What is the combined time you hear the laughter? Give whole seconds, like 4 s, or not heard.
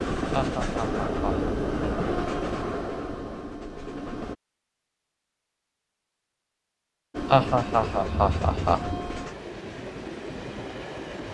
3 s.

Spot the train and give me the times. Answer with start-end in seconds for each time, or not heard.
0.0-4.3, 7.1-11.3.